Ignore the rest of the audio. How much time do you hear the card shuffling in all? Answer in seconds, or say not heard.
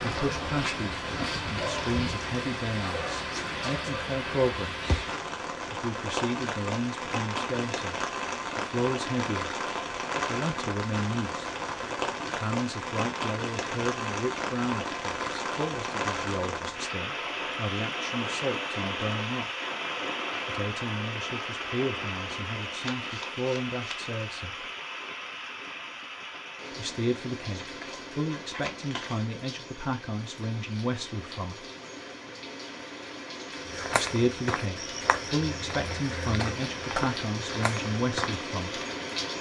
4 s.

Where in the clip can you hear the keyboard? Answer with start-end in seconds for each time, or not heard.
not heard.